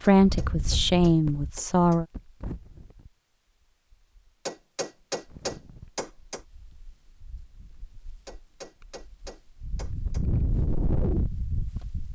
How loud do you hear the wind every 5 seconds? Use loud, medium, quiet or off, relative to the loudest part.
medium, quiet, loud.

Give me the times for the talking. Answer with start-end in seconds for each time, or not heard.
0.0-2.0.